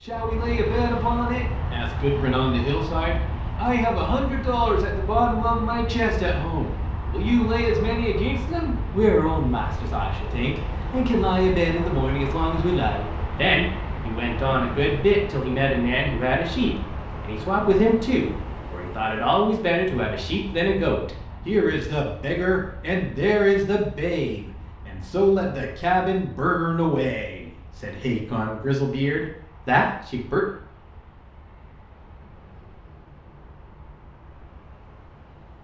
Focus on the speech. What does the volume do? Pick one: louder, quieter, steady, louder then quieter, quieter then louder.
steady.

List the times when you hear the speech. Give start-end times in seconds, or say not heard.
0.1-30.4.